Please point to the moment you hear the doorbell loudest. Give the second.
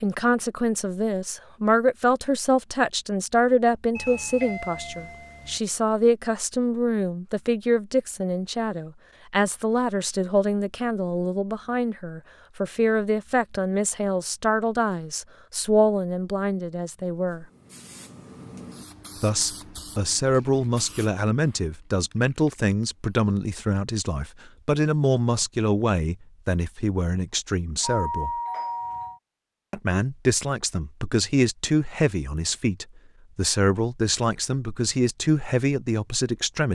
28 s.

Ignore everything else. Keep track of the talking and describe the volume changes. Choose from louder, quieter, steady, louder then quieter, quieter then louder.
steady.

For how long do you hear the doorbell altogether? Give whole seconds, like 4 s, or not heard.
3 s.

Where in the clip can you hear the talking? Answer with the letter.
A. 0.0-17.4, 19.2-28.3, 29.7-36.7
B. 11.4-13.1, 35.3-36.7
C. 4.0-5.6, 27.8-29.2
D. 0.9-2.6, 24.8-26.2
A.